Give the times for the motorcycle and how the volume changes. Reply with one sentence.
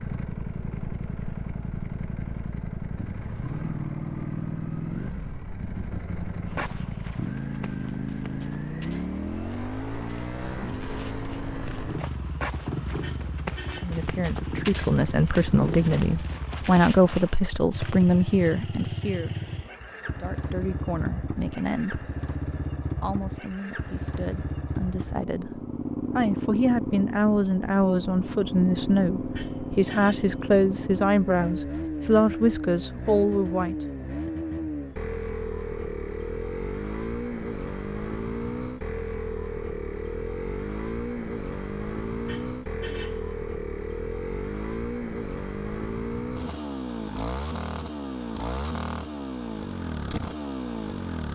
You can hear the motorcycle from 0.0 to 51.3 s, at a steady volume.